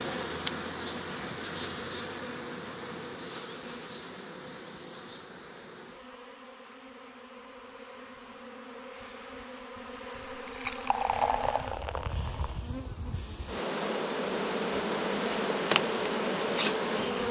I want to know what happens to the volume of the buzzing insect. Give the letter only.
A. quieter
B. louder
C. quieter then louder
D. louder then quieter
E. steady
C.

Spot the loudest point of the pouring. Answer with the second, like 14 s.
11 s.